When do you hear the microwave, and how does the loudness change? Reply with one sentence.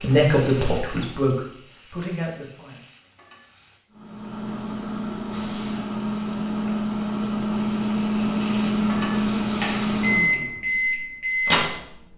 The microwave can be heard from 3.9 to 12.1 s, getting louder.